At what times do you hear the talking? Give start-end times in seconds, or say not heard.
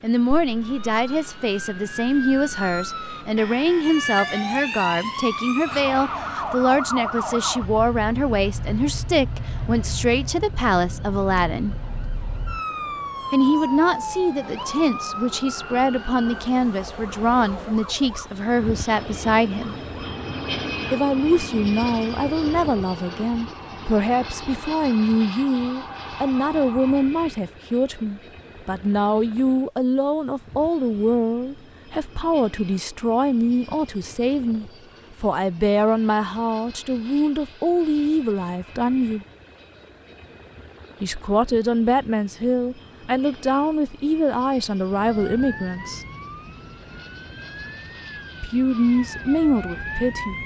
0.0-11.8, 13.3-19.8, 20.9-39.2, 41.0-46.0, 48.4-50.4.